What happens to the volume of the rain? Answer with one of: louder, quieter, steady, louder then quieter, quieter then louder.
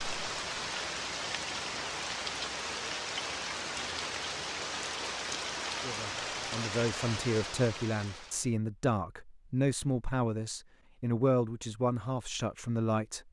steady.